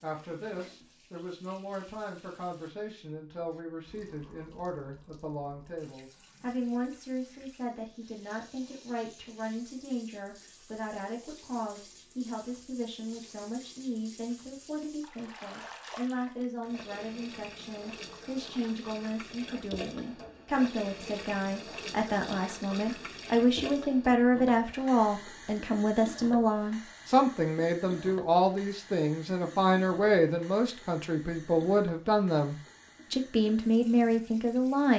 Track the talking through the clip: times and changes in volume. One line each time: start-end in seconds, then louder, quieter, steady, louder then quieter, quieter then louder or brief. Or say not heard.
0.0-34.9 louder.